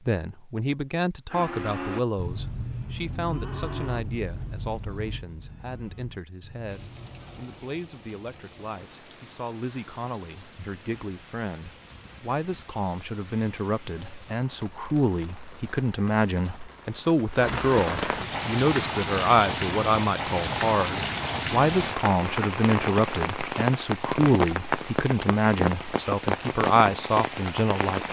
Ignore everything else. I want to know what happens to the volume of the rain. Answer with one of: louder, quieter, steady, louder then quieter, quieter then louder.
louder.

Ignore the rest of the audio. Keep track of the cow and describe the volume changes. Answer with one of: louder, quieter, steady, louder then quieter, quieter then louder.
quieter.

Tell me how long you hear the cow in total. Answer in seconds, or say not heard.
6 s.